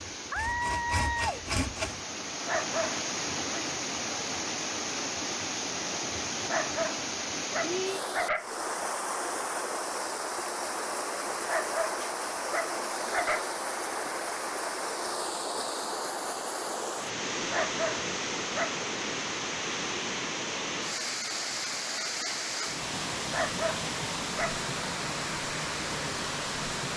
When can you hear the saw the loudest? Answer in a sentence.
The volume of the saw peaks at 2 seconds.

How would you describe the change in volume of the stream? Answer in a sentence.
The loudness of the stream stays about the same.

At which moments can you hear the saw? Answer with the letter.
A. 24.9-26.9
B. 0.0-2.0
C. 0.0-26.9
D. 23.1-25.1
B.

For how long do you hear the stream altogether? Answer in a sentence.
The stream can be heard for 27 seconds in total.